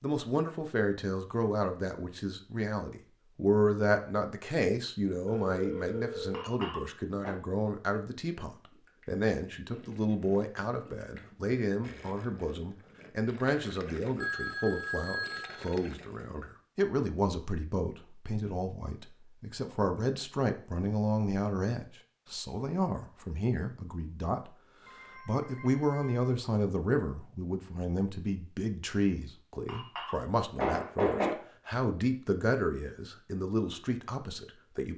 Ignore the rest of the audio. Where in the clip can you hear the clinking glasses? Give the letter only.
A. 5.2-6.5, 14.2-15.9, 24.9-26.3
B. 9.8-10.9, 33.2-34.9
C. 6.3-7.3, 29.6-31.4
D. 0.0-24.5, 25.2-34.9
C.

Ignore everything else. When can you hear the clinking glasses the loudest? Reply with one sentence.
The loudest moment of the clinking glasses is at 31 seconds.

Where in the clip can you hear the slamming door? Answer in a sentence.
The slamming door can't be heard in this clip.